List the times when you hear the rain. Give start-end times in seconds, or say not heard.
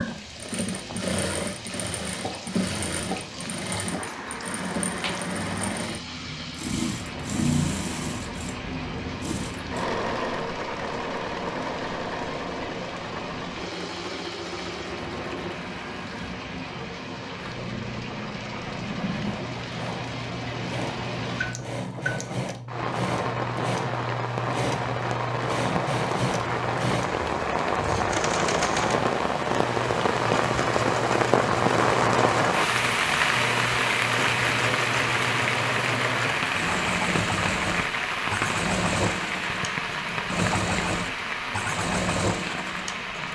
0.0-43.3.